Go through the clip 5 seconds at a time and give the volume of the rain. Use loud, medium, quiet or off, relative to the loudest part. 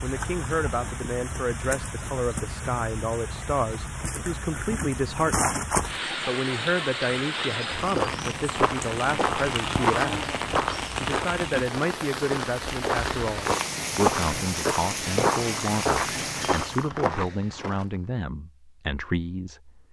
medium, loud, loud, loud.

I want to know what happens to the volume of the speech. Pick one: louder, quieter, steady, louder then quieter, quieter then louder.
steady.